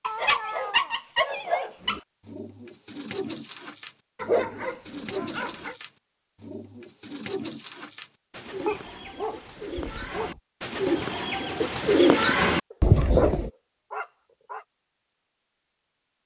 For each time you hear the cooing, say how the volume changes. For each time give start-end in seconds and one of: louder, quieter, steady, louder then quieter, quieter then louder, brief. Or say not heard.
1.8-13.5 louder.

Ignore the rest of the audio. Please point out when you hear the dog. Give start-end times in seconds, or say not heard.
0.0-2.0, 4.2-5.8, 8.7-10.4, 12.7-14.7.